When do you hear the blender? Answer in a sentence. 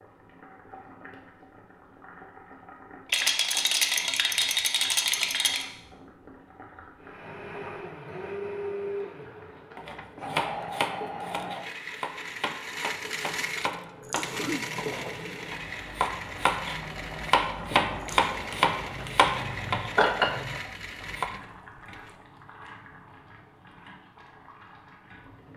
The blender can be heard from 7.0 to 22.1 s.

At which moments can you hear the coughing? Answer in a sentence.
You can hear the coughing from 14.2 to 14.7 s.